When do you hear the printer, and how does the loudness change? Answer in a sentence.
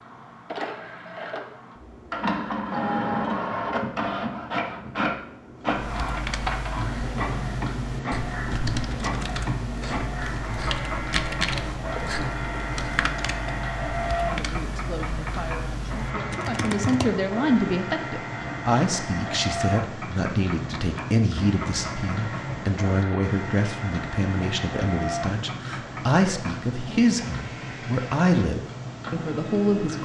You can hear the printer from 0.0 to 30.0 s, getting quieter.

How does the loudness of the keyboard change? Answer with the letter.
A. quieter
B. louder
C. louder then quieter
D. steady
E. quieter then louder
C.